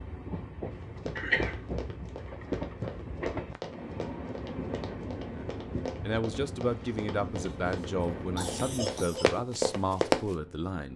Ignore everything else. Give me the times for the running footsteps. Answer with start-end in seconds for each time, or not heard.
0.7-10.2.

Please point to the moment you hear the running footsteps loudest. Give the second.
10 s.